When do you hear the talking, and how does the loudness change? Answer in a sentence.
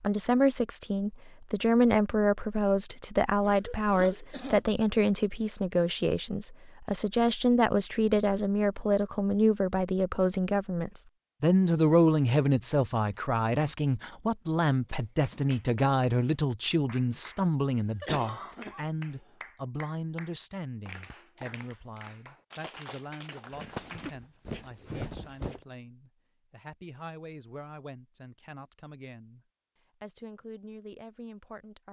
You can hear the talking from 0.0 to 31.8 s, getting quieter.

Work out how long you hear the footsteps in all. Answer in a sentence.
The footsteps can be heard for 2 seconds in total.